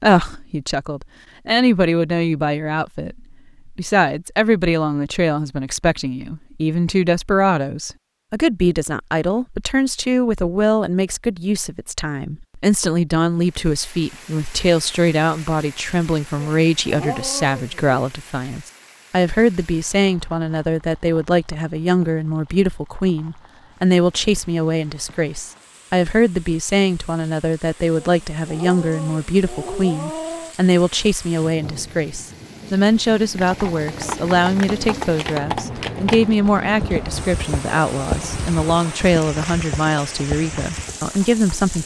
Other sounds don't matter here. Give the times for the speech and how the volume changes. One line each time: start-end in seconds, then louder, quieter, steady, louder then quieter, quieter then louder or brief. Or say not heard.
0.0-41.8 steady.